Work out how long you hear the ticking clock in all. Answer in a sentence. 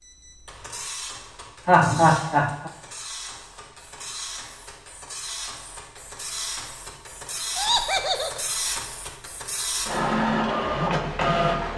You can't hear the ticking clock here.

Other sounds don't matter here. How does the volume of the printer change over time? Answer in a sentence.
The loudness of the printer goes up.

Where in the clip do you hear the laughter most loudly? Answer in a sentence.
The volume of the laughter peaks at 2 seconds.